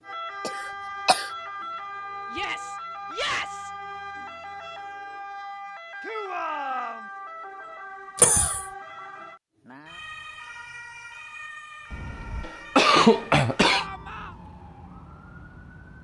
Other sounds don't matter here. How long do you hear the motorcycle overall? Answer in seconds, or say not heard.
not heard.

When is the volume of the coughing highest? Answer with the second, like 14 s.
13 s.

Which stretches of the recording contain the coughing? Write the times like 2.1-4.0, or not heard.
0.4-1.3, 8.2-8.7, 11.9-13.8.